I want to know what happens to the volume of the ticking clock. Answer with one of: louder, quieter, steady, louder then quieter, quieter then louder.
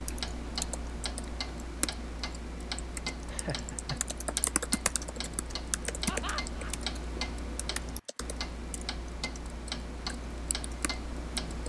steady.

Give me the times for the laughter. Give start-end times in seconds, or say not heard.
3.2-4.0, 6.0-6.8.